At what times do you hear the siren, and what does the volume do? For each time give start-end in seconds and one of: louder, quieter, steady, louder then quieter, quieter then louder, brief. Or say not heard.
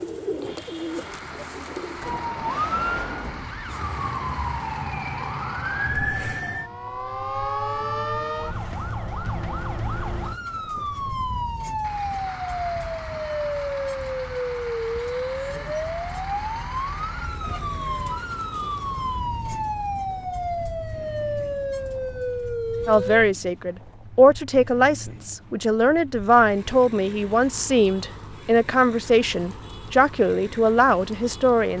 1.9-23.2 steady.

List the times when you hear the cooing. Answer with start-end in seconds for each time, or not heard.
0.0-2.4.